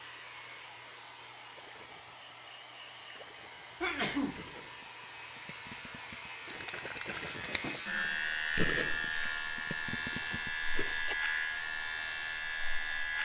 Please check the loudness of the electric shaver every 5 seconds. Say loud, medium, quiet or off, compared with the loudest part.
quiet, loud, loud.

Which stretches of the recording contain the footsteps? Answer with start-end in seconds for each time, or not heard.
not heard.